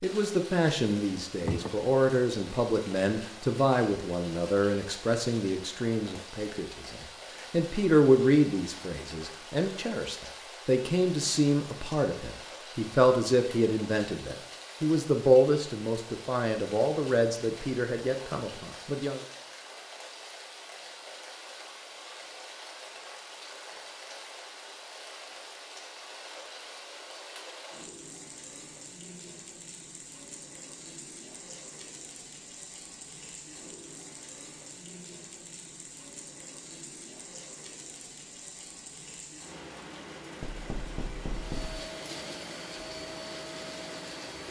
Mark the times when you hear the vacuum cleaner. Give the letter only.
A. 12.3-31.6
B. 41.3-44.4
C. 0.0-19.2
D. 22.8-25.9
B.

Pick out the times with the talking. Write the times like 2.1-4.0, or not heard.
0.0-19.2.